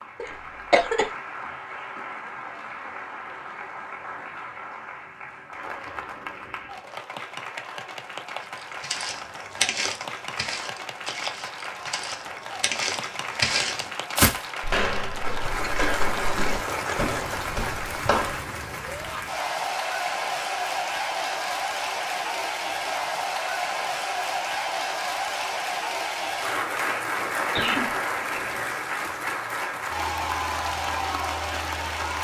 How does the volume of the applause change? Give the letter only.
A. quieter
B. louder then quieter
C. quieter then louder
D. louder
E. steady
D.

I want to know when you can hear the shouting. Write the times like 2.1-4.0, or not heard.
18.8-19.2.